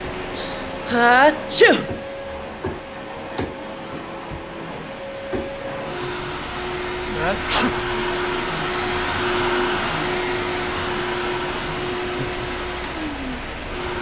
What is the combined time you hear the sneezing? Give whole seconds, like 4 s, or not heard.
2 s.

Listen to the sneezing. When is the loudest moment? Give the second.
1 s.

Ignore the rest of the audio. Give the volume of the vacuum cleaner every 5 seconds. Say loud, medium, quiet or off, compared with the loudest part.
medium, loud, loud.